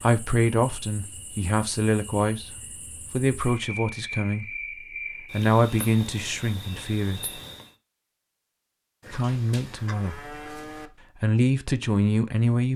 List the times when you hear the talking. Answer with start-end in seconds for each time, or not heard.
0.0-4.5, 5.3-7.4, 9.1-10.3, 11.2-12.7.